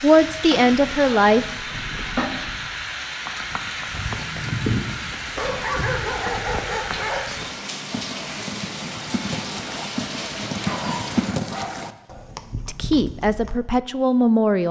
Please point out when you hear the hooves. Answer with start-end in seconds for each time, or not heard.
3.2-13.6.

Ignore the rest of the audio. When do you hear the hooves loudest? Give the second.
11 s.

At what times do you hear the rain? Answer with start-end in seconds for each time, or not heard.
0.0-11.4.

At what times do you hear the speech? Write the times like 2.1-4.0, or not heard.
0.0-1.4, 12.7-14.6.